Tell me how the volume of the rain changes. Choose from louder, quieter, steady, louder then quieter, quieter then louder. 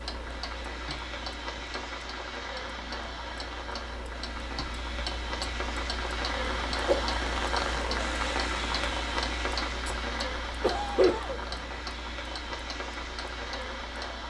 louder then quieter.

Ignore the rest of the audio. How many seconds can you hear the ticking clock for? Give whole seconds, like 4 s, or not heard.
14 s.